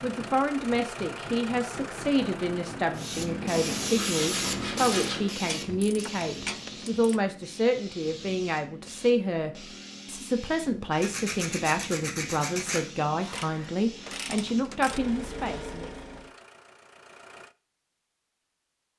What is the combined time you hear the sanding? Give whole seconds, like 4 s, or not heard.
4 s.